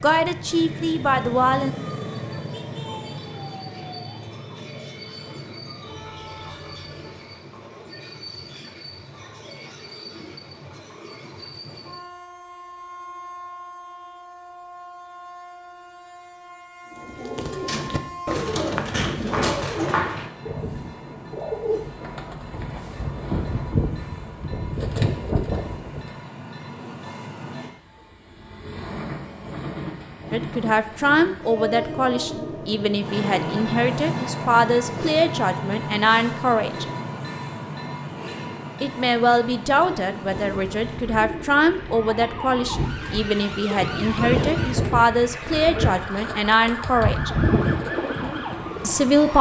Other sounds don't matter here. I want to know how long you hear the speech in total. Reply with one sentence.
The speech can be heard for 17 seconds in total.